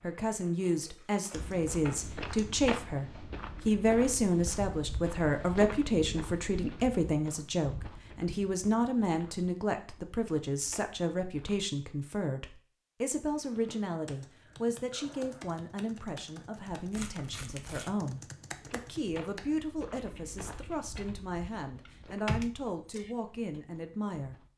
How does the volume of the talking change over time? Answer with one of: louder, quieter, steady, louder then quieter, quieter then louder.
quieter.